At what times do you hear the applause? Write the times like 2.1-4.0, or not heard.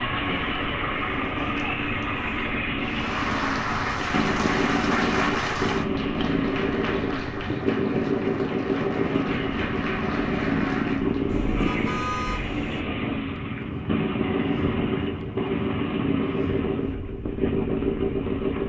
2.8-11.2.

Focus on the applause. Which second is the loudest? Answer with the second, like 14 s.
5 s.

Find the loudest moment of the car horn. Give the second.
12 s.